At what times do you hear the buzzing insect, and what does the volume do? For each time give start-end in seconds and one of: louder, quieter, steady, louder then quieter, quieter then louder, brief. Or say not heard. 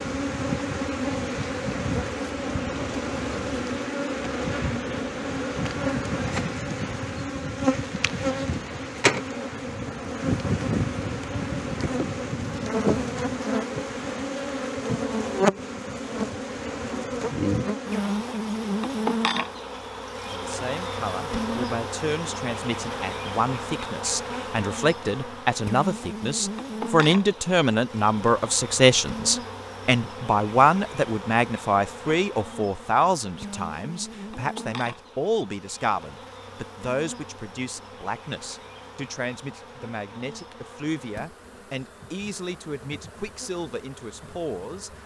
0.0-45.0 quieter.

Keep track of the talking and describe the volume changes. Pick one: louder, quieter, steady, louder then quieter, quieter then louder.
louder then quieter.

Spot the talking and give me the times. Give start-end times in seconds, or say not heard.
20.3-45.0.